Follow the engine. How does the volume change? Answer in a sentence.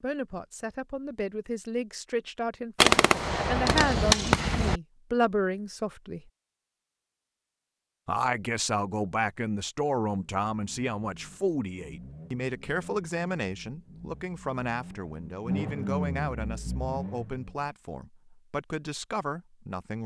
The volume of the engine goes up.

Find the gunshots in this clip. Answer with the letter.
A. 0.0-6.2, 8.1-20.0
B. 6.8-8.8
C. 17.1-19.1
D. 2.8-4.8
D.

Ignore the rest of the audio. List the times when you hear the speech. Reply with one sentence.
The speech can be heard from 0.0 to 6.2 s and from 8.1 to 20.0 s.